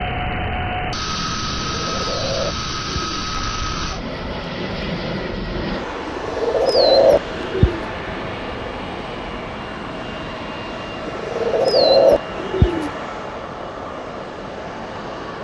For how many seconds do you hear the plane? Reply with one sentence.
You can hear the plane for 15 seconds altogether.